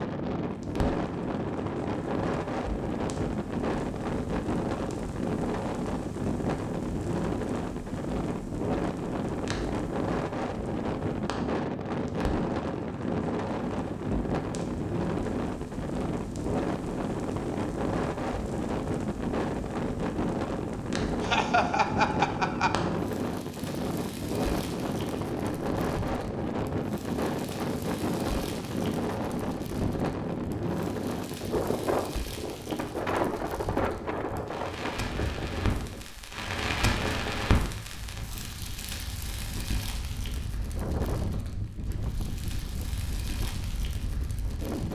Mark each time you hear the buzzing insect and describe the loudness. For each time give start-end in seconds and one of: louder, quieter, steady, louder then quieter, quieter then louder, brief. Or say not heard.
not heard.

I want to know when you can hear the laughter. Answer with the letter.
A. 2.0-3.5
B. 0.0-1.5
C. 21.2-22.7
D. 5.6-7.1
C.